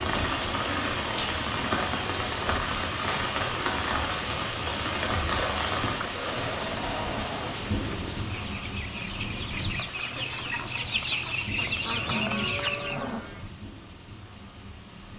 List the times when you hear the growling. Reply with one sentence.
You can hear the growling from 0.1 to 1.0 s, from 6.0 to 7.6 s and from 12.1 to 13.2 s.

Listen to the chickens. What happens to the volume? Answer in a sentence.
The loudness of the chickens goes up.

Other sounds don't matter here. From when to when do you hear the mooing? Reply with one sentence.
You can hear the mooing from 11.8 to 13.5 s.